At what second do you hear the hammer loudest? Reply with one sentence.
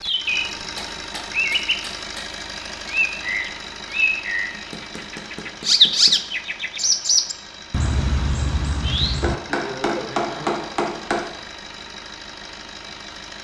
The loudest moment of the hammer is at 10 seconds.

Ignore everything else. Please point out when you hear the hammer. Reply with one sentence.
You can hear the hammer from 0.6 to 2.2 s, from 4.5 to 6.3 s and from 9.2 to 11.2 s.